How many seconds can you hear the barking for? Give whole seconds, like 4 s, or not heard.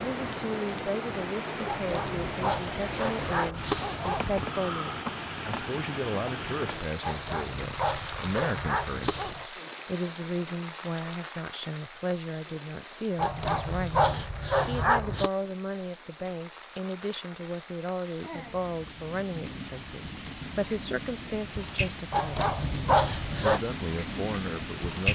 9 s.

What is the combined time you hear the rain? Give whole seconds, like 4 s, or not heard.
25 s.